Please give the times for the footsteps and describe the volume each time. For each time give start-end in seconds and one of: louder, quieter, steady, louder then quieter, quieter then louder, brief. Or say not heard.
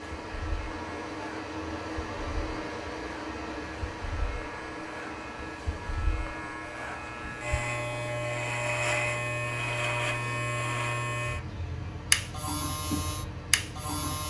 not heard.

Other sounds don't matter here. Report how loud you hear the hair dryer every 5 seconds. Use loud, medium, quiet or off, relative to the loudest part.
loud, medium, medium.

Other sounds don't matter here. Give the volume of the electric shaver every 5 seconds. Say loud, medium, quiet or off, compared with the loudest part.
quiet, loud, loud.